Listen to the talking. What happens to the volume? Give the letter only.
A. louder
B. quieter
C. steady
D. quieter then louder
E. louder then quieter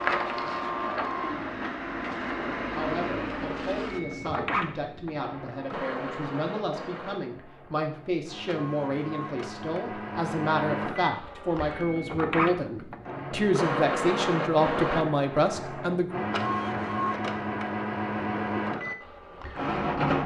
A.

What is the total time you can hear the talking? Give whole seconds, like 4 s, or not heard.
14 s.